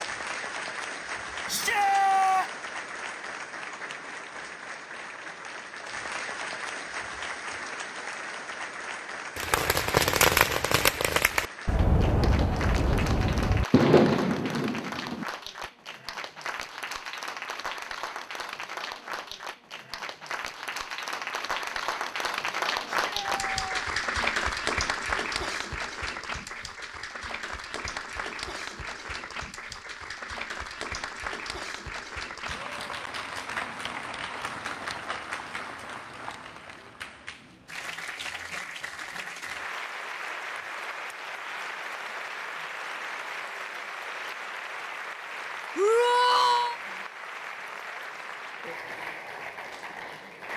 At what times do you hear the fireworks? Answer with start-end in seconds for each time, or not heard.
9.3-15.2.